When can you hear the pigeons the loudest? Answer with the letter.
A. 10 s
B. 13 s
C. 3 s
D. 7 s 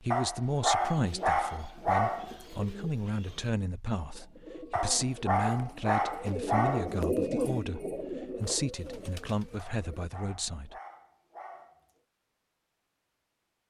D.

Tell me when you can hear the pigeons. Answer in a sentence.
The pigeons can be heard from 0.8 to 10.1 s.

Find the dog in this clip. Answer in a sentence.
The dog can be heard from 0.1 to 2.4 s, from 4.7 to 7.0 s and from 9.6 to 11.9 s.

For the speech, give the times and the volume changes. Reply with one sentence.
You can hear the speech from 0.0 to 10.8 s, at a steady volume.